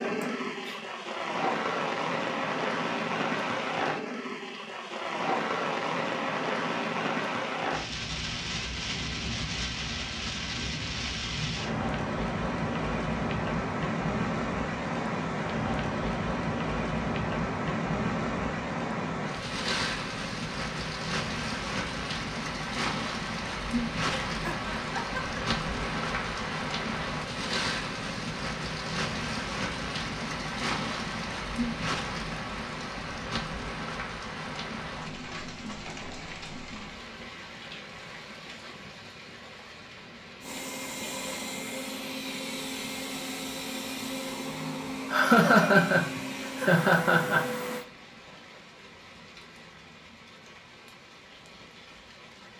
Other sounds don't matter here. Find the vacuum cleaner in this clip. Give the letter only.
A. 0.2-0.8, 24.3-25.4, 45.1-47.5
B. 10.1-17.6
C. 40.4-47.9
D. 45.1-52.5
C.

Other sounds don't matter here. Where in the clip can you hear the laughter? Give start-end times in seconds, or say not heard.
0.2-0.8, 24.3-25.4, 45.1-47.5.